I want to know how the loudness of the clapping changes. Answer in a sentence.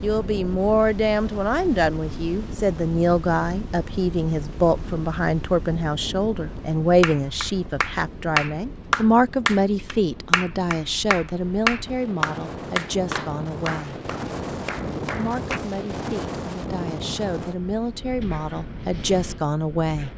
The loudness of the clapping goes down.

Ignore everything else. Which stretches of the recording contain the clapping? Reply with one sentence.
You can hear the clapping from 7.0 to 15.6 s.